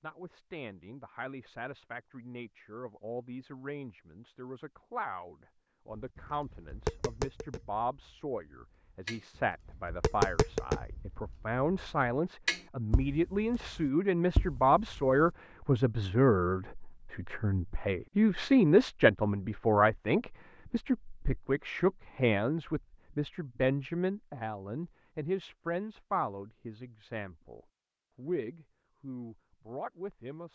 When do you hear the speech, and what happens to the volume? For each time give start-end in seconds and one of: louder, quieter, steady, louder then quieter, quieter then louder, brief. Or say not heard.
0.0-30.4 louder then quieter.